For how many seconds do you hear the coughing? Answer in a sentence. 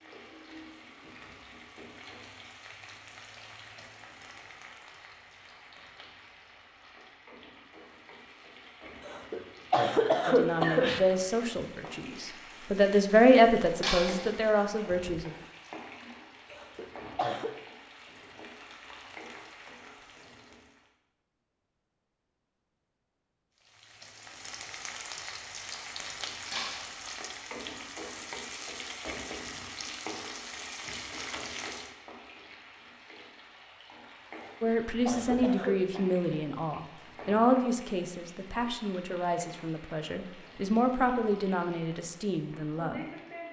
You can hear the coughing for 5 seconds altogether.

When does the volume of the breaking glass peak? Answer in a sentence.
The loudest moment of the breaking glass is at 14 seconds.